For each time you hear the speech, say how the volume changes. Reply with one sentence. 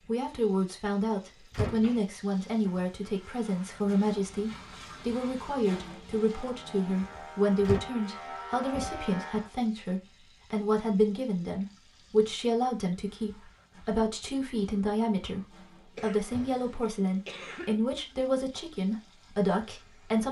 The speech can be heard from 0.1 to 20.2 s, at a steady volume.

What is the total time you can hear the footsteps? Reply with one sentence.
You can't hear the footsteps here.